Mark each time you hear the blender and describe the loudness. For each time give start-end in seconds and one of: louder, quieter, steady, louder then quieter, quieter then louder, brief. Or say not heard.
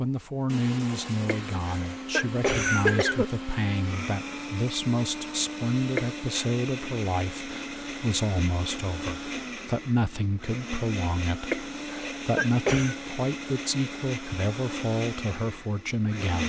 0.0-16.4 steady.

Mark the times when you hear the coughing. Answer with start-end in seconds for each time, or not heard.
1.2-3.2, 6.0-6.5, 11.5-12.9.